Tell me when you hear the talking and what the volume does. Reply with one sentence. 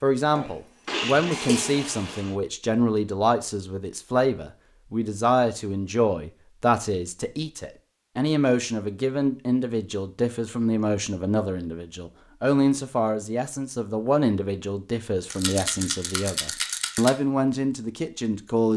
You can hear the talking from 0.0 to 18.7 s, at a steady volume.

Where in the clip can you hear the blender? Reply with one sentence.
The blender can be heard from 0.8 to 2.4 s.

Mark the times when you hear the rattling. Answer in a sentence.
You can hear the rattling from 15.3 to 17.1 s.